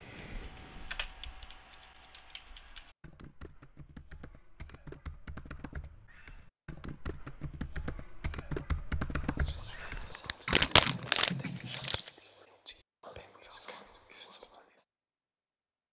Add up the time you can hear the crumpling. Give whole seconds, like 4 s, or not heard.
2 s.